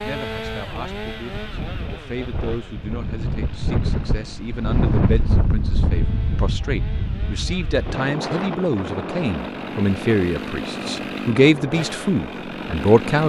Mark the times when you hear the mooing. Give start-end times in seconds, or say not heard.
not heard.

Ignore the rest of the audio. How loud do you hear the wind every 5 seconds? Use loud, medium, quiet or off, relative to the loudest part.
loud, loud, medium.